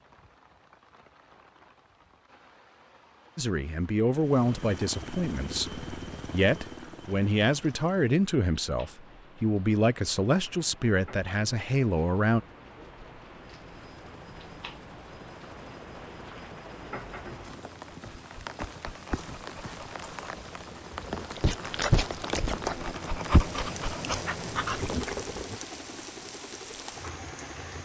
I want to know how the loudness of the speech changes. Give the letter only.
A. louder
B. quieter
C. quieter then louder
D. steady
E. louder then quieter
D.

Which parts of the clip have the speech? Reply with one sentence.
You can hear the speech from 3.4 to 12.4 s.